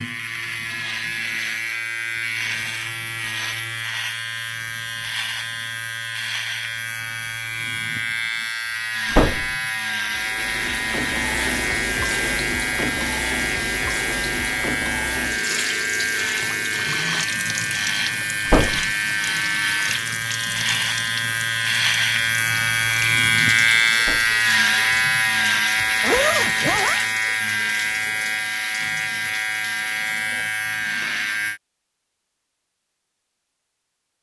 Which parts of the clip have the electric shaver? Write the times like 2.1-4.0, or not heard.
0.0-31.6.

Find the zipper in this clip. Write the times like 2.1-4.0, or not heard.
25.8-27.0.